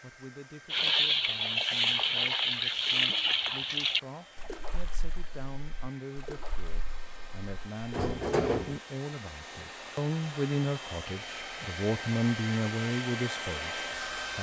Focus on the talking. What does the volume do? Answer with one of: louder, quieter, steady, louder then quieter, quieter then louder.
louder.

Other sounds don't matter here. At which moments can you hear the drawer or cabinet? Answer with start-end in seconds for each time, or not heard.
7.9-8.8.